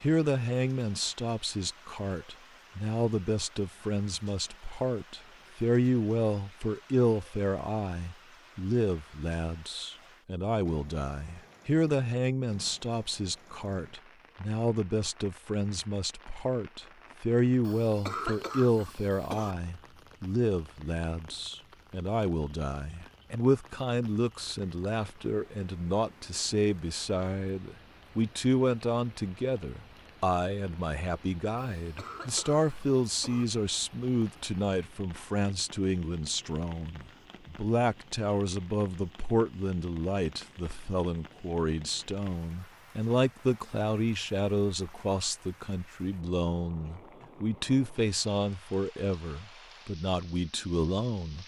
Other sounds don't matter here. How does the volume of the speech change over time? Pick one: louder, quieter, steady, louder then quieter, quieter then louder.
steady.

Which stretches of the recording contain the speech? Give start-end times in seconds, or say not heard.
0.0-51.4.